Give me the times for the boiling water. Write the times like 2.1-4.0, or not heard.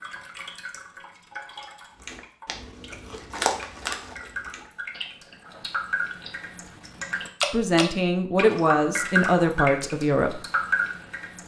not heard.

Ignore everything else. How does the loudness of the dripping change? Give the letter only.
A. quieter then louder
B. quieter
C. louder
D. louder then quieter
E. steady
C.